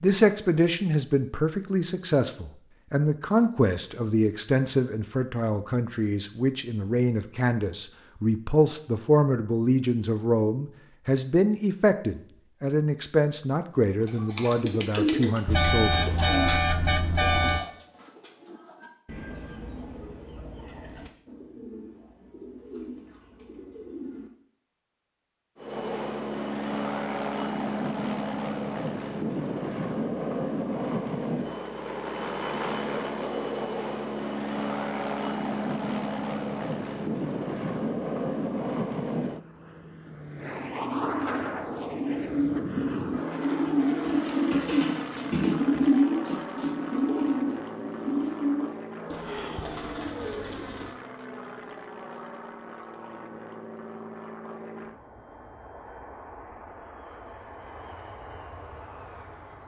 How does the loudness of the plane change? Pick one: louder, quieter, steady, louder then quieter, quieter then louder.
quieter.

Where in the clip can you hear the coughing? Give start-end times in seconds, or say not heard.
not heard.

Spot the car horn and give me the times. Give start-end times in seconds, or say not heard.
15.4-17.6.